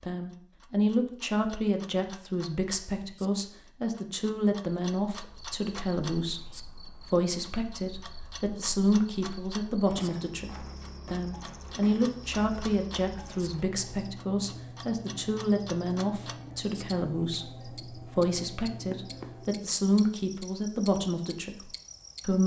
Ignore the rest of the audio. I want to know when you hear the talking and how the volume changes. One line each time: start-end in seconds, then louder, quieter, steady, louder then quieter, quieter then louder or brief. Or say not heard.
0.0-22.4 steady.